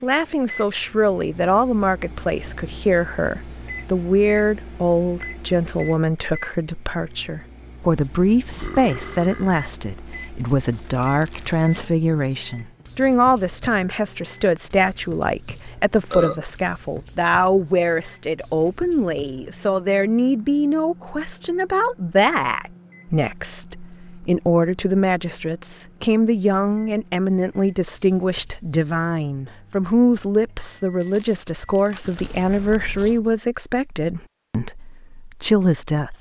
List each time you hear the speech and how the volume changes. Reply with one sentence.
The speech can be heard from 0.0 to 36.1 s, at a steady volume.